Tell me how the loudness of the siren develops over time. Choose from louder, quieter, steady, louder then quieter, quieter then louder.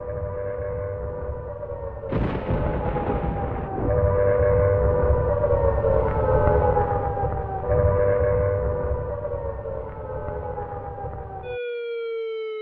louder then quieter.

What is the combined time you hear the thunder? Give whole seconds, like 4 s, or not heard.
2 s.